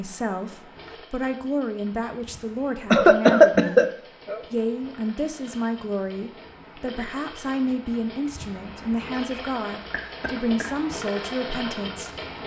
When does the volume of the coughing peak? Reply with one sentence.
The loudest moment of the coughing is at 3 seconds.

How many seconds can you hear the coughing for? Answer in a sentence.
You can hear the coughing for 3 seconds altogether.